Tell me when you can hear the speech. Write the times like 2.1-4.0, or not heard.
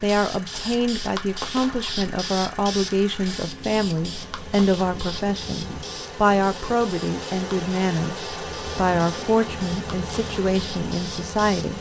0.0-11.7.